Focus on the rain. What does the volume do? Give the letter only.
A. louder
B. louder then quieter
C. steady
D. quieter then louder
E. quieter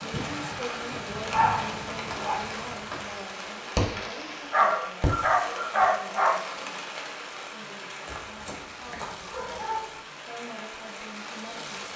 E.